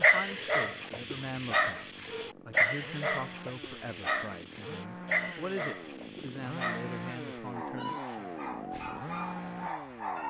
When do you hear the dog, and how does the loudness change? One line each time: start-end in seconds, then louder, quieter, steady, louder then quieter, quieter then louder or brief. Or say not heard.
0.0-10.2 quieter.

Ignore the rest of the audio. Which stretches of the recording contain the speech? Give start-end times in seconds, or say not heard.
0.0-8.3.